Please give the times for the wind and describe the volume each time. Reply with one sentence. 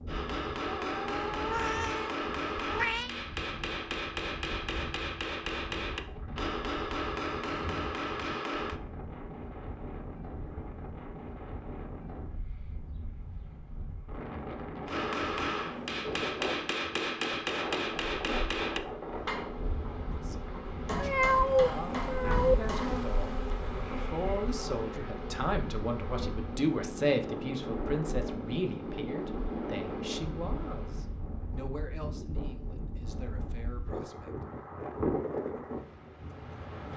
You can hear the wind from 0.0 to 36.9 s, getting louder.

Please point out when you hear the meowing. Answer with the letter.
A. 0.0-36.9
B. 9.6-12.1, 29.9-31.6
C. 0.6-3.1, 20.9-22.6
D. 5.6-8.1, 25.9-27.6
C.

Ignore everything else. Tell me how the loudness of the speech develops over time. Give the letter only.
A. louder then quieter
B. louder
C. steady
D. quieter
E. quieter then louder
A.